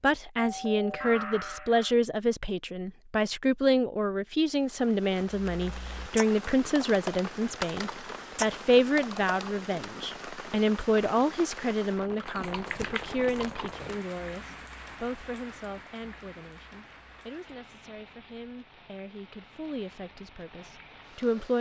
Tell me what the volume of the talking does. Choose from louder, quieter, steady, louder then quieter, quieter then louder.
quieter.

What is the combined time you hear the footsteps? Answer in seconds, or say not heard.
not heard.